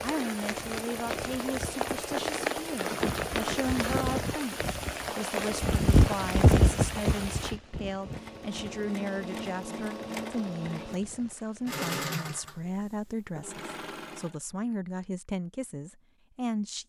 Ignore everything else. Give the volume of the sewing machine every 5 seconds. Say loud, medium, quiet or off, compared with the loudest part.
off, loud, loud, off.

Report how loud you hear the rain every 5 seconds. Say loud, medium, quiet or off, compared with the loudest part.
loud, loud, quiet, off.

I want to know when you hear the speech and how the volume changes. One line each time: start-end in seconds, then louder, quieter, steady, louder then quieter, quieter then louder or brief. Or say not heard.
0.0-16.8 steady.